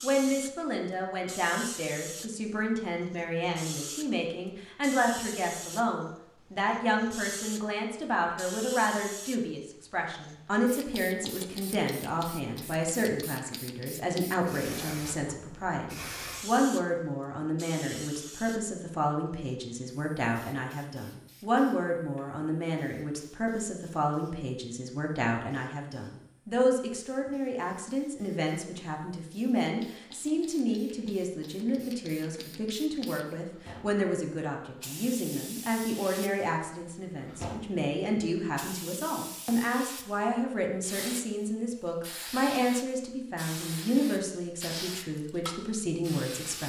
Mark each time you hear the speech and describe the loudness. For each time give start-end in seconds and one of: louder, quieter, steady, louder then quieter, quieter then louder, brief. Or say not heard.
0.0-46.6 steady.